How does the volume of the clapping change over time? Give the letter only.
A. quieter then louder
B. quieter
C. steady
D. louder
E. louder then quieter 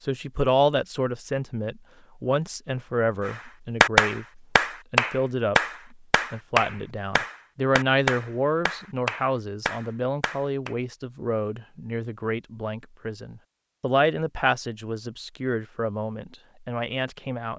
B.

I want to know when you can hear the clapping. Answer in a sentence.
The clapping can be heard from 3.2 to 10.8 s.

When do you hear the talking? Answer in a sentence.
The talking can be heard from 0.1 to 17.5 s.